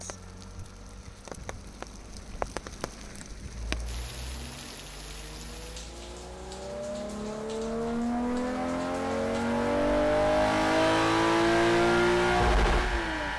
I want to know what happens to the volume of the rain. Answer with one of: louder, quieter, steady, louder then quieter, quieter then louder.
louder then quieter.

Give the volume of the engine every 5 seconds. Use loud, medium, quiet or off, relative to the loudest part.
quiet, medium, loud.